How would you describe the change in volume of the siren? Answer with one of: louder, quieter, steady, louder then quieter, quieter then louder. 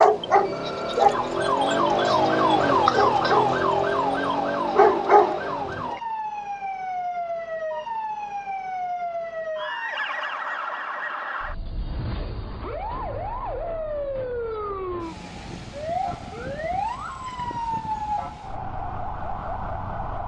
quieter.